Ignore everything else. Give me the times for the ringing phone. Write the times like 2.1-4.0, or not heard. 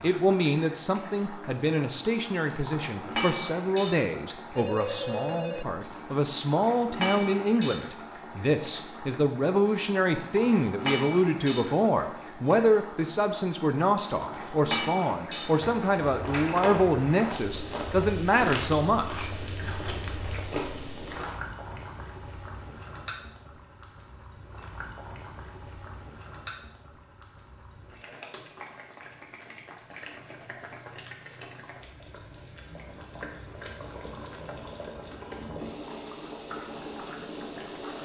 4.5-5.7.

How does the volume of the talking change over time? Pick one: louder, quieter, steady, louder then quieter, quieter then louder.
steady.